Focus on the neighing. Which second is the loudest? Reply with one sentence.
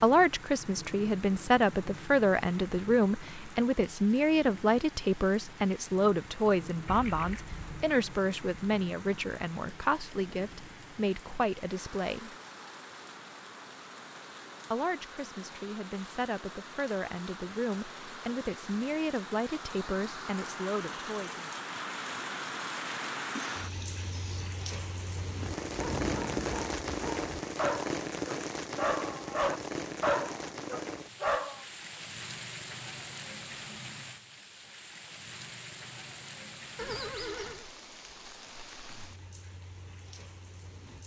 The loudest moment of the neighing is at 37 seconds.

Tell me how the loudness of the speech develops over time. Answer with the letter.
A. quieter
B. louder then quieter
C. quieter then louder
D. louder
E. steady
A.